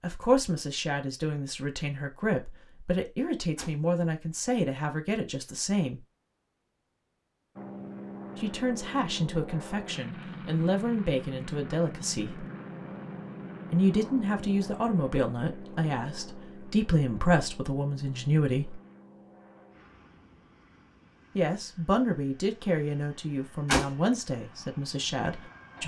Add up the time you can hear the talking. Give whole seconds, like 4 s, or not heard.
20 s.